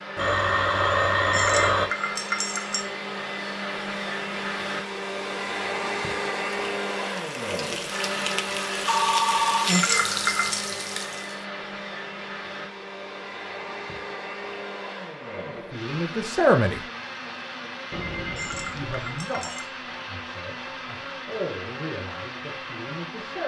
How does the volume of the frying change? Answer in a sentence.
The volume of the frying goes up, then down.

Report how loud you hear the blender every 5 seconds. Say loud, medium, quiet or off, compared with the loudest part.
loud, loud, medium, medium, medium.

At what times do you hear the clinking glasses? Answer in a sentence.
You can hear the clinking glasses from 1.3 to 2.9 s, from 9.7 to 10.6 s and from 18.4 to 19.7 s.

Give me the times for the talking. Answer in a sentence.
You can hear the talking from 15.5 to 16.8 s and from 18.8 to 23.4 s.